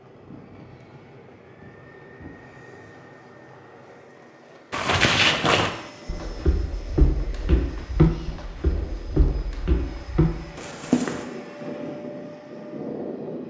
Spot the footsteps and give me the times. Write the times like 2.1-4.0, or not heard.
4.7-11.2.